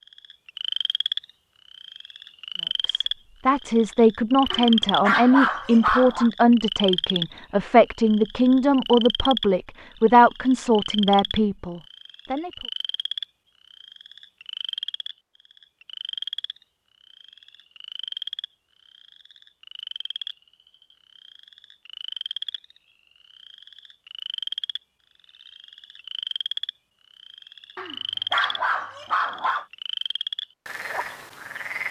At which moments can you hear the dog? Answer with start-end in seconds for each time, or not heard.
4.5-6.3, 27.8-29.6.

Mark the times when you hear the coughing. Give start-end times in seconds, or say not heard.
not heard.